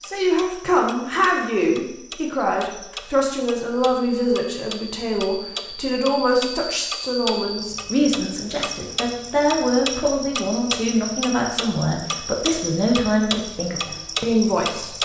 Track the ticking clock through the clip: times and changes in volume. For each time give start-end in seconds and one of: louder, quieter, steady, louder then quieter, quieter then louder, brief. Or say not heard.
0.0-15.0 louder.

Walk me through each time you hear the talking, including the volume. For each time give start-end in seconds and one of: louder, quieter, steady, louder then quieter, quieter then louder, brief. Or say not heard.
0.0-15.0 steady.